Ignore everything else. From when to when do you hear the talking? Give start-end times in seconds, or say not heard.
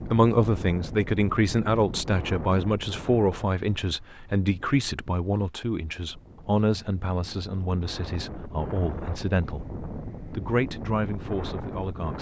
0.1-9.7, 10.3-12.1.